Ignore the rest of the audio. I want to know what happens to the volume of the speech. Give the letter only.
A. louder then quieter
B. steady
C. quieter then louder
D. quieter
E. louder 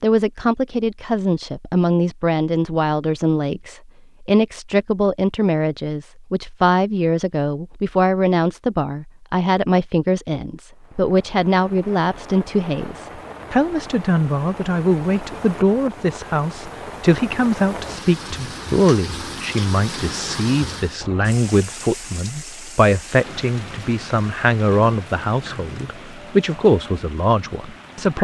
B.